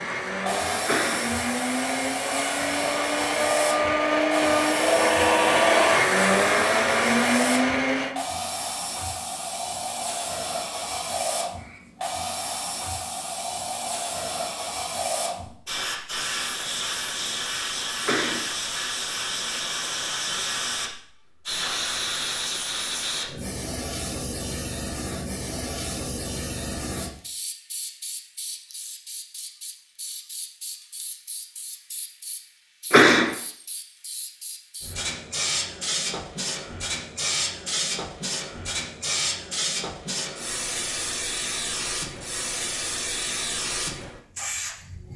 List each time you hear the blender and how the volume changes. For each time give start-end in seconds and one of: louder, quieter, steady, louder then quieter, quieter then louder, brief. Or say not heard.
0.0-8.2 louder.